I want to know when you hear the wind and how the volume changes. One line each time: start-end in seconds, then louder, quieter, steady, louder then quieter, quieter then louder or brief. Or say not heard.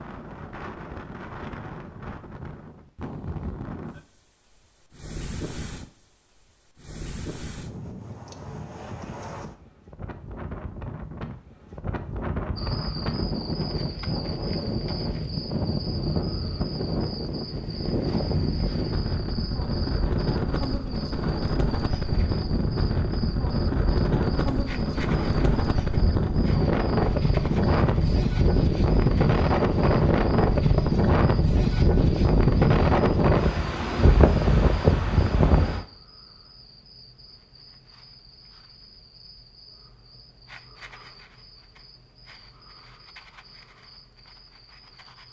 0.0-35.9 louder.